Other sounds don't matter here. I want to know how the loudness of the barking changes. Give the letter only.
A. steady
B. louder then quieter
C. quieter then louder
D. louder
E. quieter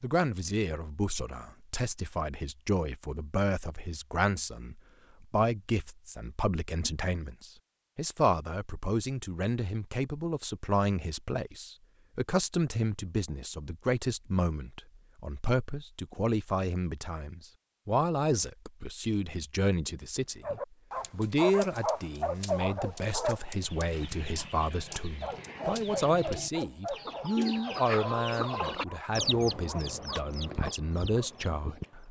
E.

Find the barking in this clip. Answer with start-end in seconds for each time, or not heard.
20.4-31.3.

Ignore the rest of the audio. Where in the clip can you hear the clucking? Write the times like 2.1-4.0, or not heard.
23.6-32.0.